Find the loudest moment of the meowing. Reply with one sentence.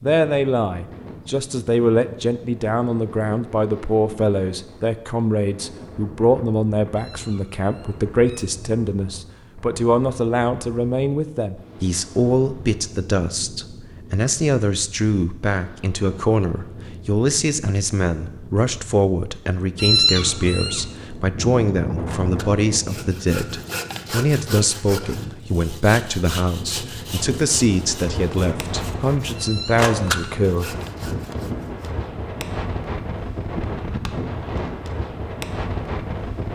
The volume of the meowing peaks at 20 seconds.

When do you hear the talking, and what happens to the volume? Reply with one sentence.
You can hear the talking from 0.0 to 30.8 s, at a steady volume.